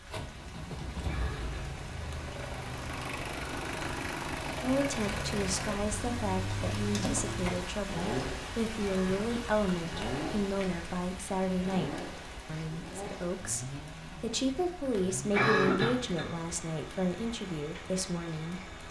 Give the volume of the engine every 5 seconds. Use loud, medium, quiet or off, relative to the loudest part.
loud, loud, loud, medium.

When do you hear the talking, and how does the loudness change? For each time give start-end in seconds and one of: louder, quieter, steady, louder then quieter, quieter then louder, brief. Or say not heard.
4.6-18.7 steady.